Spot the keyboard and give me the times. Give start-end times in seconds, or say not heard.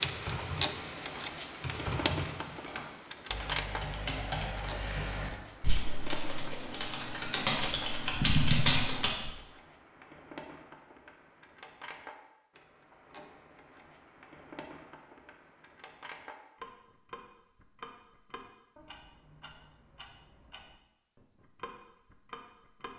0.0-9.3.